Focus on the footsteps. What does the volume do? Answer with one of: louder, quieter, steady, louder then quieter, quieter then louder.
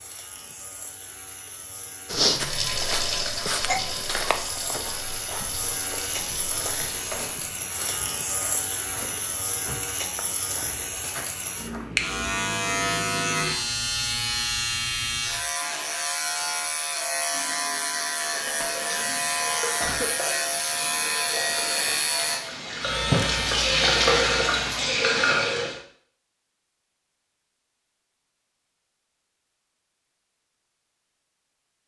quieter.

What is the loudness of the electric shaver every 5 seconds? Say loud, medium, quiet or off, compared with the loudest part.
quiet, medium, loud, loud, loud, off, off.